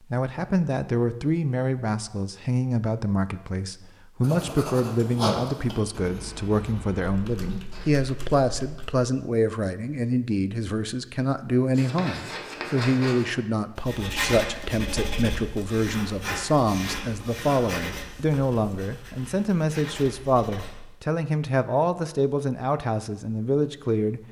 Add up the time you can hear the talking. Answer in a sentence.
The talking can be heard for 24 seconds in total.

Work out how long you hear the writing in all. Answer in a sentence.
You can hear the writing for 13 seconds altogether.